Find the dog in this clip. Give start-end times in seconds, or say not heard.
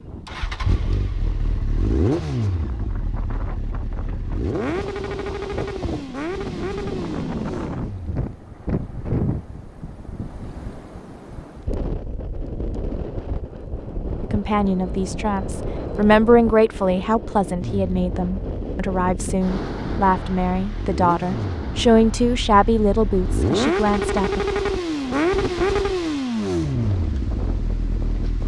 not heard.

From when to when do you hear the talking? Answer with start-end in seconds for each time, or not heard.
14.2-24.4.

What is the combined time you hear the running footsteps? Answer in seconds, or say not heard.
not heard.